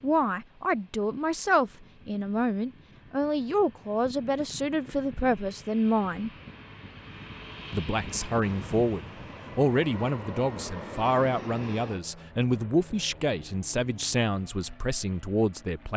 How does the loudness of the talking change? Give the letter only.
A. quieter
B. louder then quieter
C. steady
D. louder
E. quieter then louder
C.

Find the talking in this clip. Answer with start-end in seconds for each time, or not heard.
0.0-6.3, 7.7-15.9.